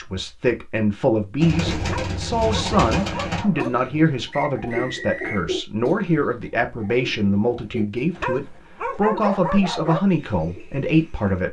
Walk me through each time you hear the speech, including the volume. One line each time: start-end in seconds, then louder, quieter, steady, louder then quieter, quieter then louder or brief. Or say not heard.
0.0-11.4 steady.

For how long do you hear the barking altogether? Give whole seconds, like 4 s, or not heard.
4 s.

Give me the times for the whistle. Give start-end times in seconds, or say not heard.
4.3-5.5.